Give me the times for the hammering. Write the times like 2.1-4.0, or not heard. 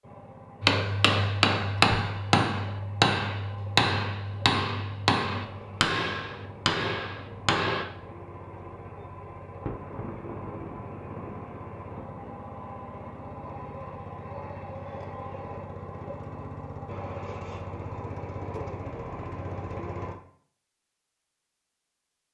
0.6-7.8.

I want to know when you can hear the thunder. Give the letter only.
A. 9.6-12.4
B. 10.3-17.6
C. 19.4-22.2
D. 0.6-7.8
A.